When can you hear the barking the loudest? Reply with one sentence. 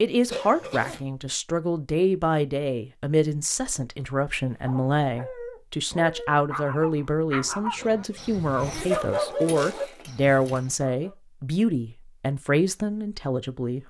The loudest moment of the barking is at 9 seconds.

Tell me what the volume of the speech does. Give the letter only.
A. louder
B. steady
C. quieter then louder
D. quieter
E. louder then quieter
B.